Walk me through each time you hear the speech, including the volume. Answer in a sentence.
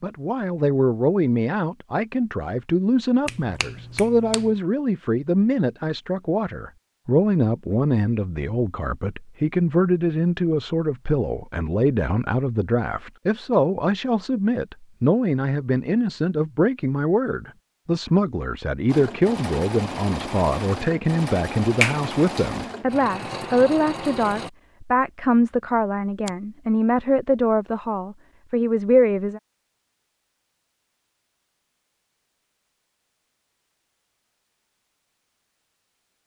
You can hear the speech from 0.0 to 29.4 s, at a steady volume.